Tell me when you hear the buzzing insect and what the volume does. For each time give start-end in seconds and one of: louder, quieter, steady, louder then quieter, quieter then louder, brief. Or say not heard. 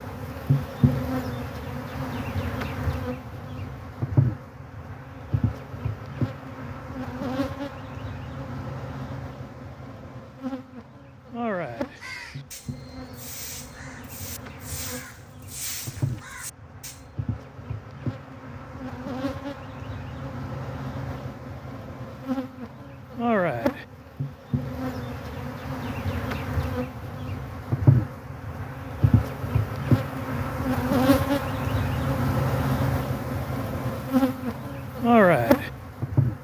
0.0-36.3 quieter then louder.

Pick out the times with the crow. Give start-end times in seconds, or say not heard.
11.6-17.1.